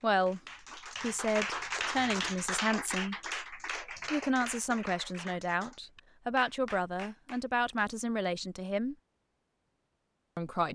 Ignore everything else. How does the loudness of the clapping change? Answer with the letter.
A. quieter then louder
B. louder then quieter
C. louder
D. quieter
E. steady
D.